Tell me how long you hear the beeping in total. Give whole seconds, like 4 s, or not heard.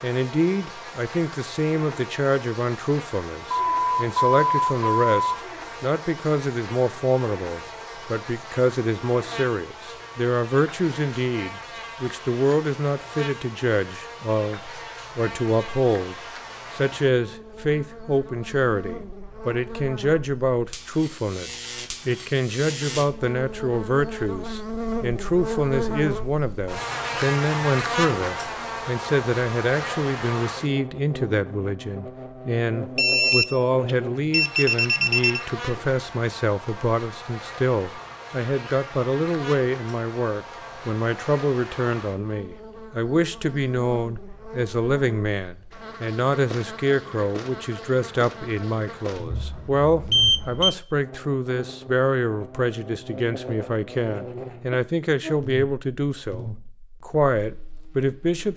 6 s.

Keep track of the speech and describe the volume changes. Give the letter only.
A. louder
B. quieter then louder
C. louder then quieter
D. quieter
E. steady
E.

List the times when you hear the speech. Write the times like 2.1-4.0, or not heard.
0.0-16.1, 16.8-58.5.